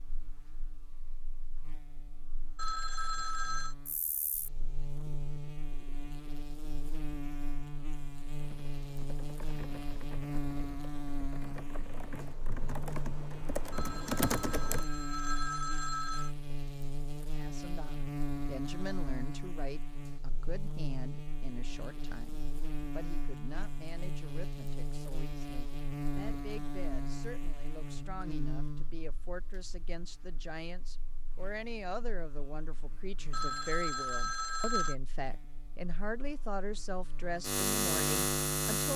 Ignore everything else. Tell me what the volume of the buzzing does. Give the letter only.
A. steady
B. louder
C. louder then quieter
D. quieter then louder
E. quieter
B.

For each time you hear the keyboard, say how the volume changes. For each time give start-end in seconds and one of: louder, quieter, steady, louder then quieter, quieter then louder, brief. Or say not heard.
8.4-14.8 louder.